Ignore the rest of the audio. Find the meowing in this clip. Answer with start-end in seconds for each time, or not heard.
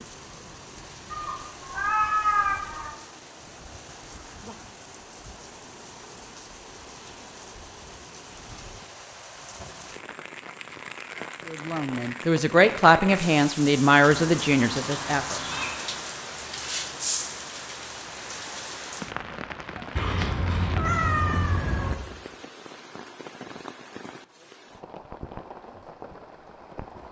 1.1-3.0, 14.1-15.8, 19.9-21.9.